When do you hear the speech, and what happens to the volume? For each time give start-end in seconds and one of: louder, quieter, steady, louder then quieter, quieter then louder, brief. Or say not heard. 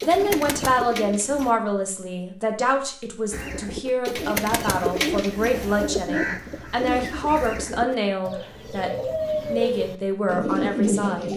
0.0-11.3 steady.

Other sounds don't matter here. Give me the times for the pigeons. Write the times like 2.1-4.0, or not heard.
0.0-1.6, 3.3-11.3.